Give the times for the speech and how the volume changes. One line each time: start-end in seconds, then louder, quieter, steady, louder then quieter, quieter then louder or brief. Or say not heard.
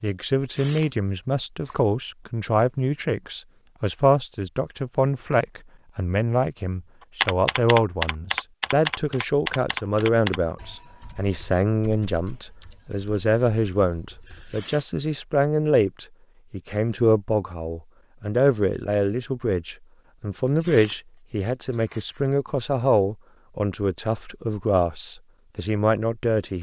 0.0-26.5 steady.